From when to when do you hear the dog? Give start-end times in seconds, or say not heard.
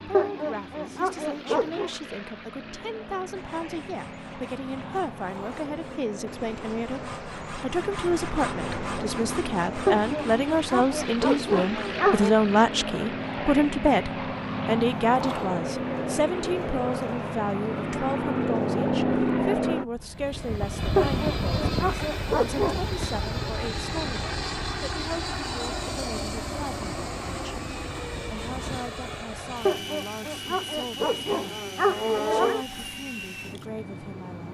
0.1-1.9, 9.8-12.3, 20.9-22.9, 29.6-32.6.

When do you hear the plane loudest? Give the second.
19 s.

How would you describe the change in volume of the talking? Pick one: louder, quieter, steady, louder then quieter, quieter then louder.
louder then quieter.